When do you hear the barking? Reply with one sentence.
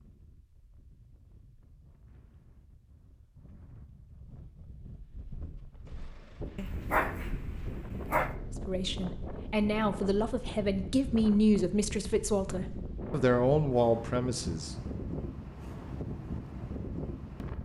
The barking can be heard from 6.5 to 8.3 s.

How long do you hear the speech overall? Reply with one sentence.
The speech can be heard for 6 seconds in total.